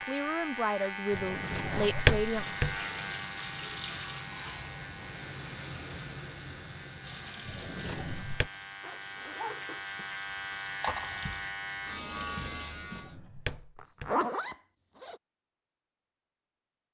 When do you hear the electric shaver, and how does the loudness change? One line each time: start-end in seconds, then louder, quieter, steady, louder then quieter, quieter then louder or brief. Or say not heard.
0.0-13.2 quieter then louder.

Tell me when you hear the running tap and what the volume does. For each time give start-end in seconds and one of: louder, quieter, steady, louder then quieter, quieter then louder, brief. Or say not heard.
2.2-12.8 quieter then louder.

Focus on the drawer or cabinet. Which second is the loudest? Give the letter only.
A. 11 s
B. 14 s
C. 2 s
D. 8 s
C.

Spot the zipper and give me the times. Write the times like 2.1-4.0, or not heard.
1.6-2.1, 8.8-9.6, 13.8-15.2.